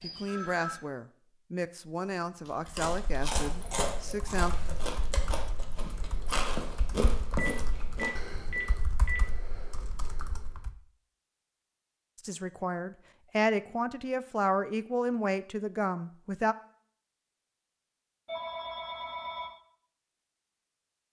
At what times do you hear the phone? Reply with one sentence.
The phone can be heard from 0.0 to 0.8 s, from 7.3 to 9.2 s and from 18.2 to 19.5 s.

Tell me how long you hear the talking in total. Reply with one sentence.
You can hear the talking for 9 seconds altogether.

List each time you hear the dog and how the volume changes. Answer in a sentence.
You can't hear the dog here.